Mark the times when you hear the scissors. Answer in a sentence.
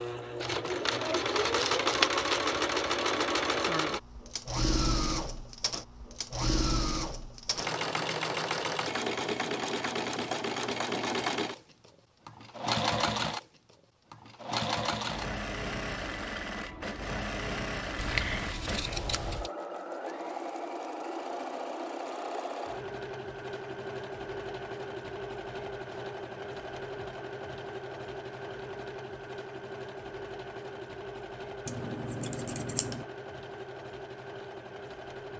The scissors can be heard from 0.4 to 2.2 s, from 17.9 to 19.5 s and from 31.6 to 33.0 s.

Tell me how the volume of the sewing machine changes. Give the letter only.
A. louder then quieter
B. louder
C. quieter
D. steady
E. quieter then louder
C.